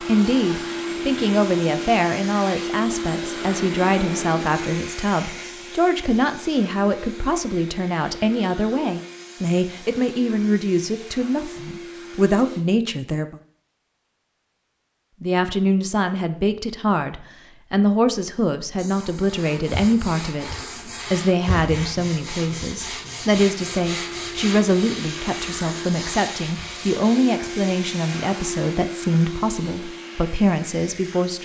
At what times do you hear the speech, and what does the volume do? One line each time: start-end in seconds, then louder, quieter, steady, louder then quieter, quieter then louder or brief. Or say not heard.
0.0-13.3 steady
15.2-31.3 steady.